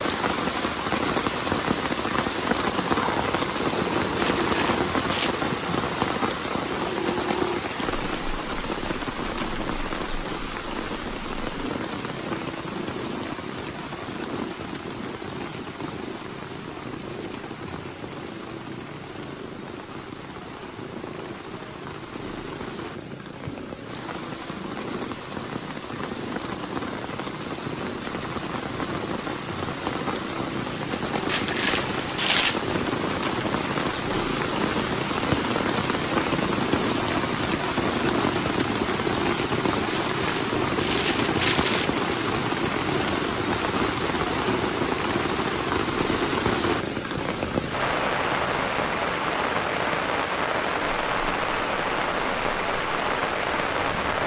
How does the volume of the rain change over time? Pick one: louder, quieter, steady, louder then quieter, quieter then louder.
quieter then louder.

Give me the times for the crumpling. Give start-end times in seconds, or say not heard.
4.2-5.3, 31.2-32.6, 39.9-41.9.